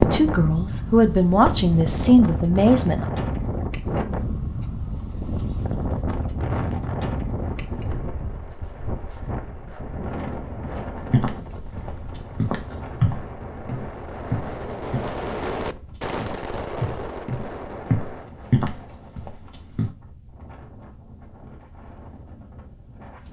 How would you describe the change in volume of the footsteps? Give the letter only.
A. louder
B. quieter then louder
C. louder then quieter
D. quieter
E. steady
B.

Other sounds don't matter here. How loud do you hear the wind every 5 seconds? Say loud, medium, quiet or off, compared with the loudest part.
loud, loud, medium, quiet, quiet.